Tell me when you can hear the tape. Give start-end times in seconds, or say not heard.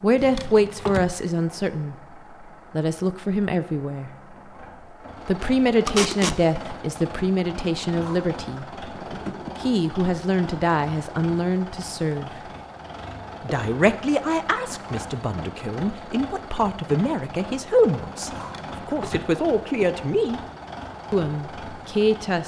5.8-6.3.